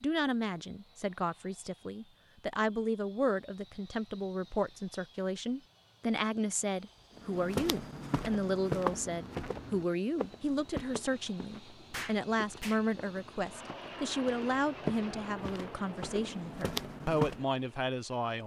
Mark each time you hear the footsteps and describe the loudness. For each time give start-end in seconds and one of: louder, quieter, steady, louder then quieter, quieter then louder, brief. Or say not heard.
7.2-17.4 quieter then louder.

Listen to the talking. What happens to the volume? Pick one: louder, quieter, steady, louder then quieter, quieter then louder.
steady.